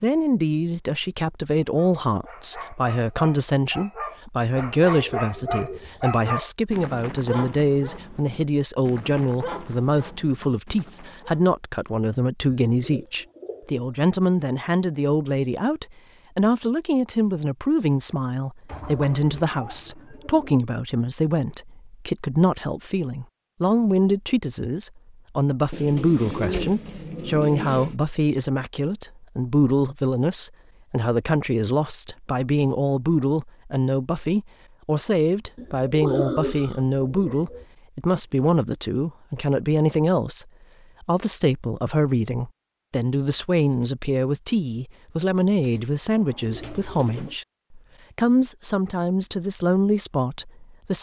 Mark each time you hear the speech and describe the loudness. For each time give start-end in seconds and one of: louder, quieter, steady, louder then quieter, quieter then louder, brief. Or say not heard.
0.0-50.9 steady.